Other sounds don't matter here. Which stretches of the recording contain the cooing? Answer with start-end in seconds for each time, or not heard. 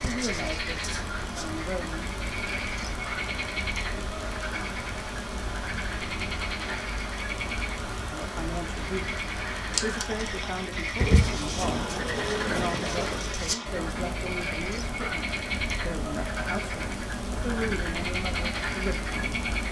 11.0-13.3.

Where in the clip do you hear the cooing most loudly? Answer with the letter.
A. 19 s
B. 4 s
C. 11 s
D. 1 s
C.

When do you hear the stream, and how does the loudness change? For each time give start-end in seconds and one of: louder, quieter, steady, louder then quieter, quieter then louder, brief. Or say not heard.
0.0-19.6 steady.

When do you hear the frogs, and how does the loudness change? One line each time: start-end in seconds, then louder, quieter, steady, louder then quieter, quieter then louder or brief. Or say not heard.
0.0-19.6 steady.